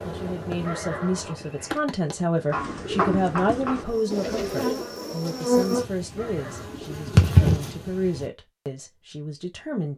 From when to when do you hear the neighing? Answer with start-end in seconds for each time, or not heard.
0.6-1.8, 6.2-6.8.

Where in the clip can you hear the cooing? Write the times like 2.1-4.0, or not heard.
2.5-7.8.